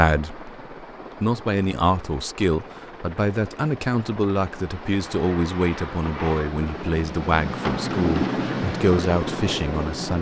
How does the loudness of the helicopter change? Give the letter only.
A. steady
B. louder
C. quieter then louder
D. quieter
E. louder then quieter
B.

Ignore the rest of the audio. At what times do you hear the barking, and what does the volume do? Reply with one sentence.
The barking can't be heard in this clip.